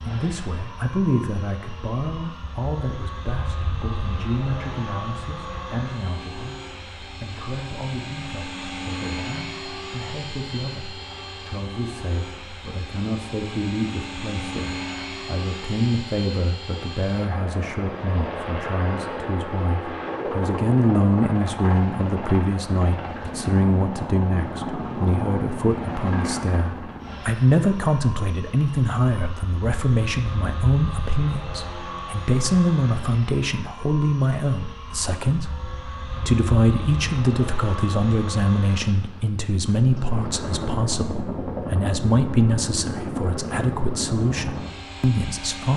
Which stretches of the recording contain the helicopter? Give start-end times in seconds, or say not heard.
0.0-45.7.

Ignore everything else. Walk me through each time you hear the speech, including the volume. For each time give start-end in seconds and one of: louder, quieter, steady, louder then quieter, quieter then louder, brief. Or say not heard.
0.0-45.7 louder.